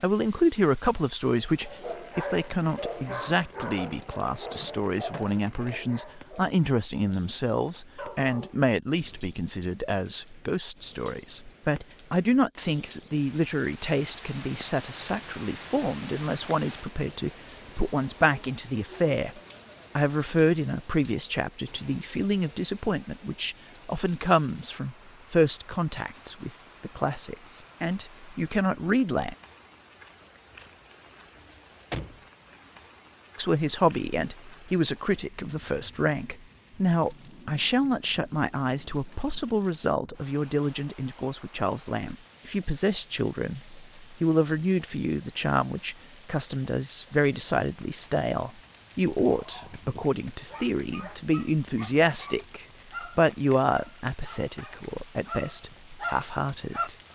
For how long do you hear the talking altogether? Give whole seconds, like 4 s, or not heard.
52 s.